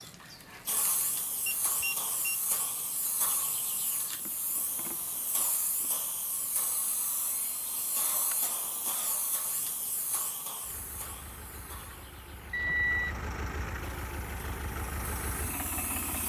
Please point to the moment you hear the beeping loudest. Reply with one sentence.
The loudest moment of the beeping is at 13 seconds.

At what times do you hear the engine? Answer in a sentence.
You can hear the engine from 10.6 to 16.2 s.